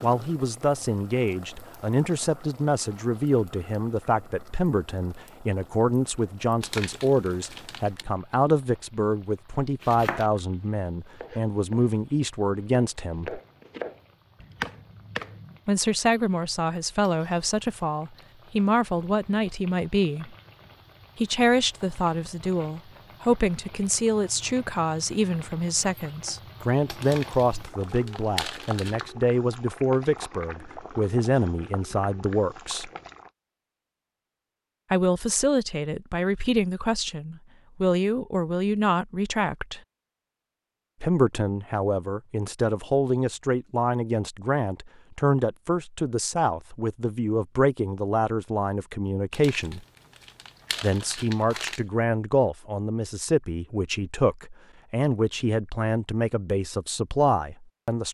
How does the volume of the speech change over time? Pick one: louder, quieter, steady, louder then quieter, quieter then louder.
steady.